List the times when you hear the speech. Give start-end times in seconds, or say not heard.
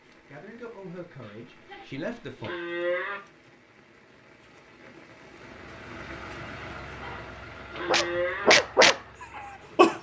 0.2-2.5.